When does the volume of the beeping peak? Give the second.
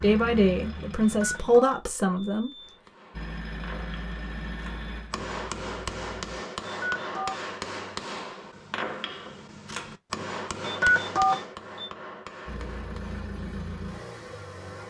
11 s.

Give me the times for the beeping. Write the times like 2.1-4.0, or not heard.
1.0-2.8, 6.7-7.4, 10.6-11.9.